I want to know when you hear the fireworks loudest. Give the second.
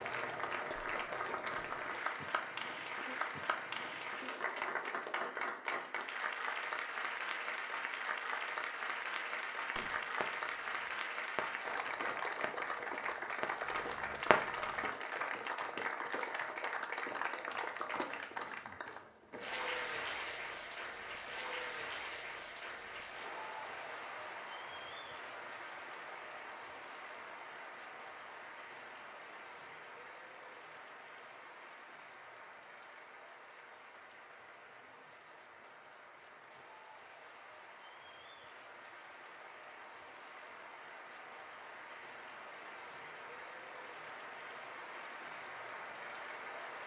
14 s.